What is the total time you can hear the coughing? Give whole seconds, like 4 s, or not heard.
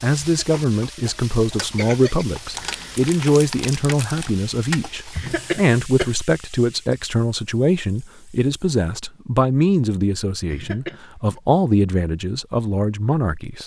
4 s.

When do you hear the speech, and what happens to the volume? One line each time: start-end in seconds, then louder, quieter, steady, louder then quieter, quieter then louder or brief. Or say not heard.
0.0-13.6 steady.